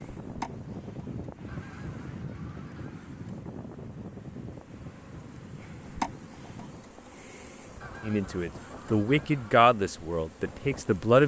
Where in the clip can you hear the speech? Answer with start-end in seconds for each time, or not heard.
8.0-11.2.